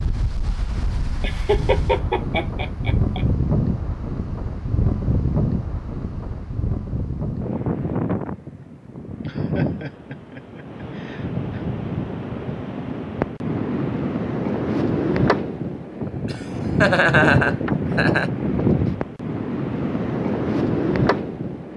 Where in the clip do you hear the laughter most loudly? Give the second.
17 s.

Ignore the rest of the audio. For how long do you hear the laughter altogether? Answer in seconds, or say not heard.
7 s.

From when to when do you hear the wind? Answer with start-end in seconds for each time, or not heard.
0.0-21.7.